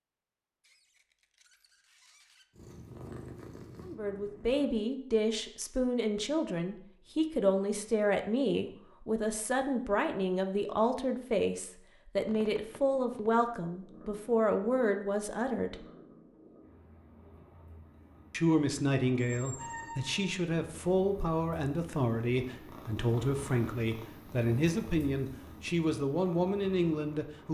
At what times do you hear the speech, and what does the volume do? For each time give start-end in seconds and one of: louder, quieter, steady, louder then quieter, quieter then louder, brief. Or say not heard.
3.9-15.8 steady
18.3-27.4 steady.